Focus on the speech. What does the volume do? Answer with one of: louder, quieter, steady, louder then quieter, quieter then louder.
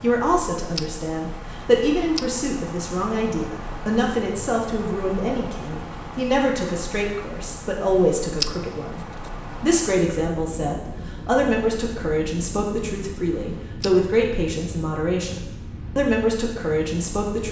steady.